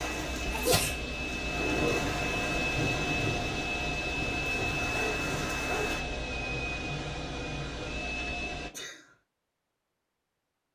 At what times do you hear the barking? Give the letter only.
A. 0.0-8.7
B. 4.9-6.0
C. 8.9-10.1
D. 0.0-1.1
B.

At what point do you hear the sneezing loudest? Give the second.
1 s.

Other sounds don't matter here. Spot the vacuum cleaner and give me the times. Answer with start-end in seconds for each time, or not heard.
0.0-8.7.